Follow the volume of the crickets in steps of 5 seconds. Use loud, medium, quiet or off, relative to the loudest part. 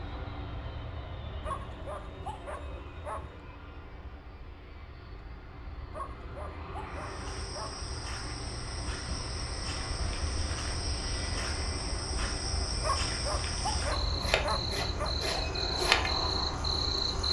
off, quiet, medium, loud.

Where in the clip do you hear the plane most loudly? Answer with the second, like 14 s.
16 s.